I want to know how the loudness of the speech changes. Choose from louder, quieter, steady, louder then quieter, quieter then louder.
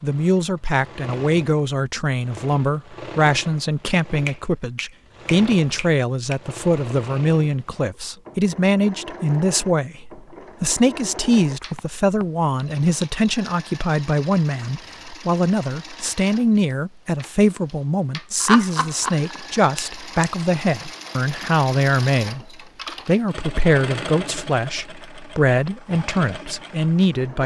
steady.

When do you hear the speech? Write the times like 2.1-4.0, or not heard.
0.0-22.4, 23.1-27.4.